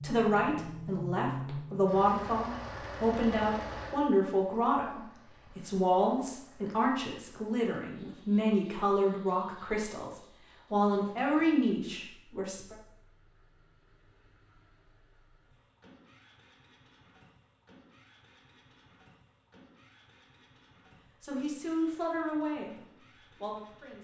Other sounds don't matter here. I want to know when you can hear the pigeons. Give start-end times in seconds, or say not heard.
not heard.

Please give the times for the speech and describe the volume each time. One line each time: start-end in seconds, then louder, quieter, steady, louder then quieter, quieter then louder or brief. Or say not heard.
0.0-12.8 steady
21.2-23.9 brief.